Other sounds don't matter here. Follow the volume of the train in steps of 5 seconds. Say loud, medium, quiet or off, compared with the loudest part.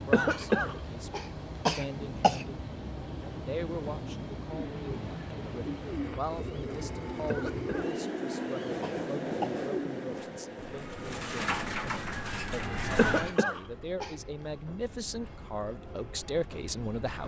loud, loud, medium, medium.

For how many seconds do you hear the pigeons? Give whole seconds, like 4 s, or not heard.
9 s.